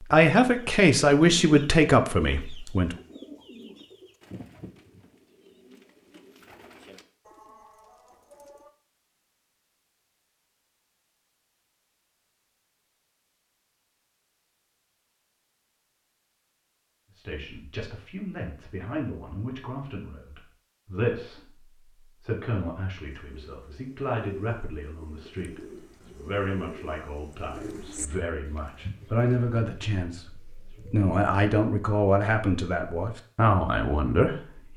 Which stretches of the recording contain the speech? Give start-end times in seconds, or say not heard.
0.1-3.0, 17.1-34.7.